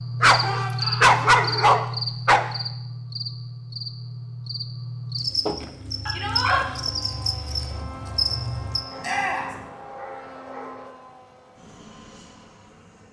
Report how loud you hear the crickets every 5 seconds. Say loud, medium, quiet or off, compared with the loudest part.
loud, loud, off.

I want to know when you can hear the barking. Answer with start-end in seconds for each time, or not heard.
0.2-2.5, 5.5-6.8, 8.9-10.9.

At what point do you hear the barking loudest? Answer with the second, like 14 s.
1 s.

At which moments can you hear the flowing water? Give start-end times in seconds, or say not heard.
not heard.